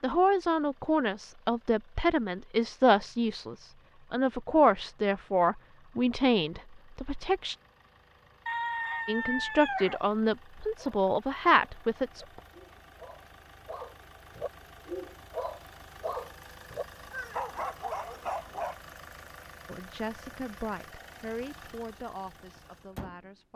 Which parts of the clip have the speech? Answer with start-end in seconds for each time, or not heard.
0.0-7.5, 9.1-12.4, 19.6-23.5.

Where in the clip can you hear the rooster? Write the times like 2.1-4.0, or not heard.
8.4-10.0.